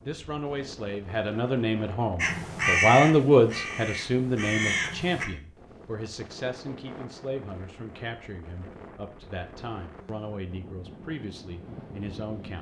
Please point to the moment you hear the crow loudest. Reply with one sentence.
The loudest moment of the crow is at 3 seconds.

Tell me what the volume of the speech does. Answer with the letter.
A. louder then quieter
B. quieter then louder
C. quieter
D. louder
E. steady
A.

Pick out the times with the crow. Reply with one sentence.
The crow can be heard from 2.1 to 5.2 s.